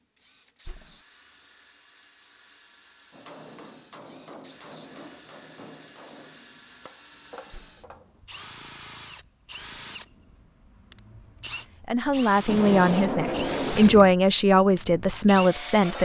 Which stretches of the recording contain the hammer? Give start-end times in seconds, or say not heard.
3.1-8.2.